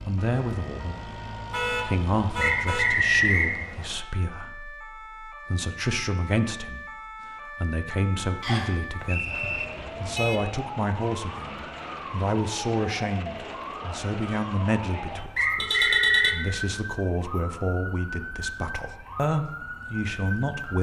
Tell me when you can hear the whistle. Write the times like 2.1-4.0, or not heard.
2.4-3.5, 8.4-9.7, 15.3-16.4.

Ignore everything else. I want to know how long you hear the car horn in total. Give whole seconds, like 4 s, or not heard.
4 s.